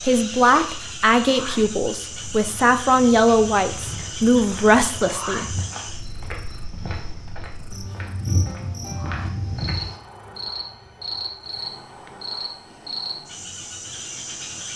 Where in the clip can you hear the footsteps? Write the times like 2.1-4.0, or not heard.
3.8-9.9.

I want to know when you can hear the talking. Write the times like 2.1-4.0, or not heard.
0.0-5.6.